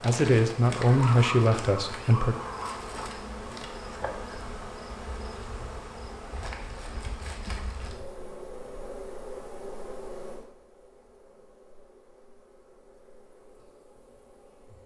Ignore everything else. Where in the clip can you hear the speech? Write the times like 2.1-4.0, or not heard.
0.0-2.4.